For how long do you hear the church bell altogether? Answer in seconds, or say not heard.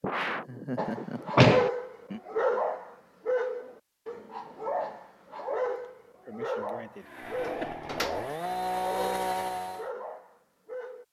not heard.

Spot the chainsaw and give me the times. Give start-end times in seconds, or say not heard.
7.0-9.9.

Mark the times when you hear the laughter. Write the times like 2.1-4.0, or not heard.
0.0-2.2, 6.2-7.7.